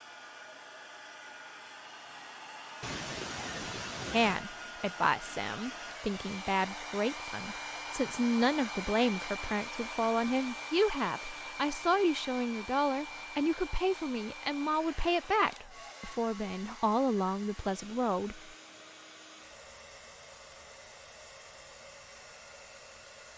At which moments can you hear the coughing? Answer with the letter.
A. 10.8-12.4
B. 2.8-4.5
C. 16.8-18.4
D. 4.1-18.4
B.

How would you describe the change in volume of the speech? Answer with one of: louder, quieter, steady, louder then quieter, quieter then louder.
steady.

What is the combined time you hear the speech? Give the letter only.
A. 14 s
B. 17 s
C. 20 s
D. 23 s
A.